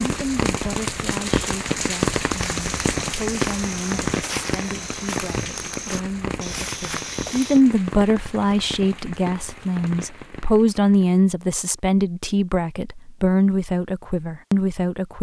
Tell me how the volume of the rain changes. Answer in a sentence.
The loudness of the rain goes down.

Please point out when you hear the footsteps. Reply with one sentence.
You can hear the footsteps from 2.4 to 7.6 s.